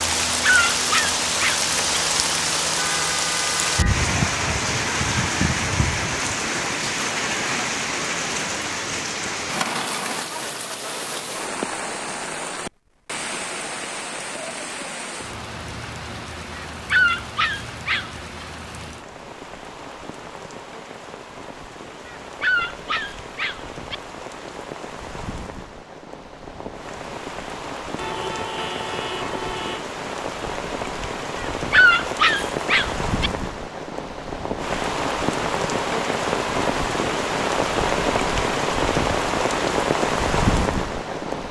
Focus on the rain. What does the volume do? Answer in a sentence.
The loudness of the rain goes down, then up.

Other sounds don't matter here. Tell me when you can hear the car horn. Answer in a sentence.
The car horn can be heard from 2.8 to 4.0 s and from 27.9 to 29.8 s.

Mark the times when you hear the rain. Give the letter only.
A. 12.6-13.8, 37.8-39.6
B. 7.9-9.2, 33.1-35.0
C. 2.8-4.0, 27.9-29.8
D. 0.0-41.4
D.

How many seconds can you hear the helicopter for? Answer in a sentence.
You can't hear the helicopter here.